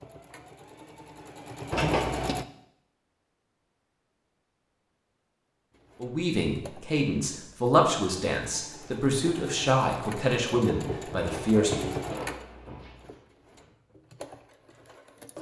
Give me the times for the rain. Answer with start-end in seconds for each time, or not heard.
not heard.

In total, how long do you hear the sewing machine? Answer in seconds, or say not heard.
12 s.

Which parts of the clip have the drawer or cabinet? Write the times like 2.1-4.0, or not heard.
1.7-2.4, 11.1-13.1.